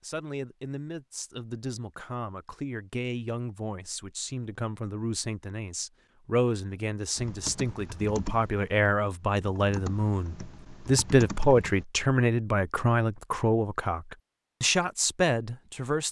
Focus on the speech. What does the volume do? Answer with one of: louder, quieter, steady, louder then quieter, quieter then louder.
louder.